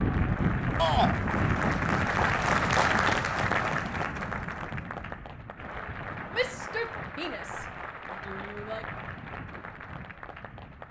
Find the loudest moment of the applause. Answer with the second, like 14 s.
3 s.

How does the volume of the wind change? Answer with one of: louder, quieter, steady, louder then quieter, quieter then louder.
quieter.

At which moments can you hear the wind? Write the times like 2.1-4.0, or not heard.
0.0-10.8.